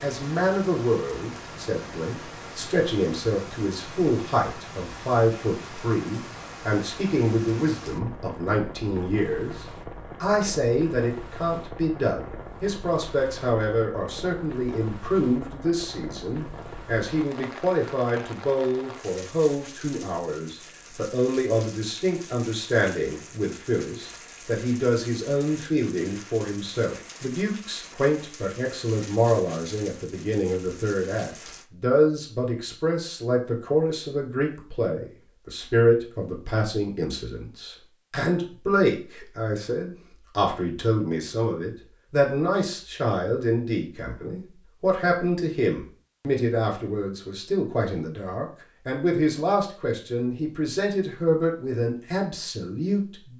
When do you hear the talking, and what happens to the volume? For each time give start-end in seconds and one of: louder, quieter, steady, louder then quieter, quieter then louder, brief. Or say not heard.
0.0-53.3 steady.